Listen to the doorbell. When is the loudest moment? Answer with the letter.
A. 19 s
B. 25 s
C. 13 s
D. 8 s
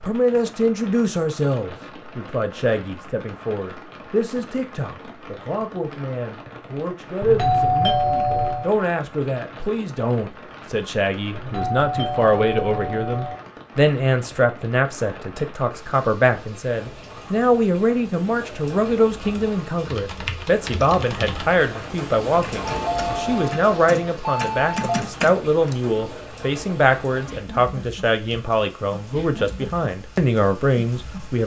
D.